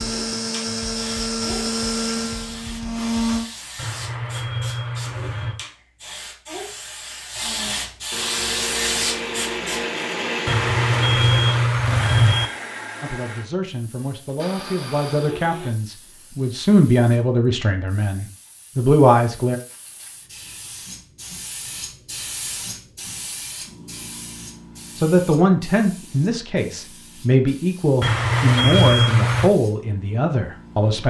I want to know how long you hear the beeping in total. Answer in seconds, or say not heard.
5 s.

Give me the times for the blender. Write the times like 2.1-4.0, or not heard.
0.0-3.5, 7.4-15.8.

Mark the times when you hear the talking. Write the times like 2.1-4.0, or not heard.
13.0-19.6, 24.9-31.0.